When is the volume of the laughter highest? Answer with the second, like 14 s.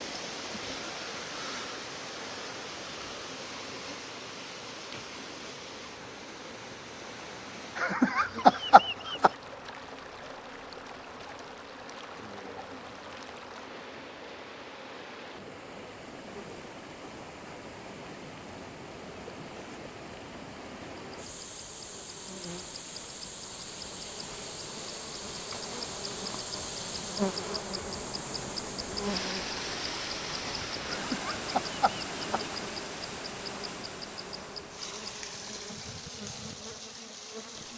9 s.